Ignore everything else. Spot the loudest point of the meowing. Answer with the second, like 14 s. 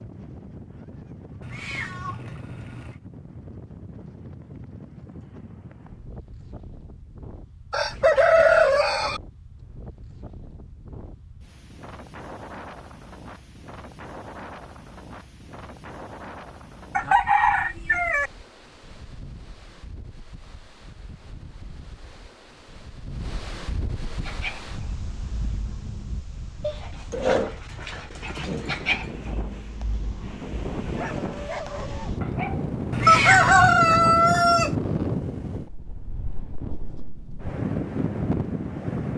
33 s.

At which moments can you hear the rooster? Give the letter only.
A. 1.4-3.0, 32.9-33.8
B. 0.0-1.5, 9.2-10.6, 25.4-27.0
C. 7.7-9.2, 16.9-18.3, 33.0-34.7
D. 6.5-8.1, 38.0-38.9
C.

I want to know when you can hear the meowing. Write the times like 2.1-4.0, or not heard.
1.4-3.0, 32.9-33.8.